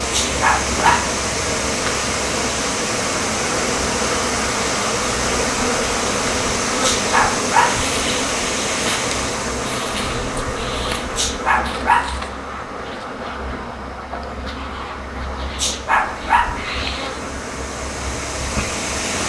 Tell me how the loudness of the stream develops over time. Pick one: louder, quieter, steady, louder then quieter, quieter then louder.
quieter then louder.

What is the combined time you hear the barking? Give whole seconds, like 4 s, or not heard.
4 s.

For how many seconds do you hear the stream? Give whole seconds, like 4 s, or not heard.
19 s.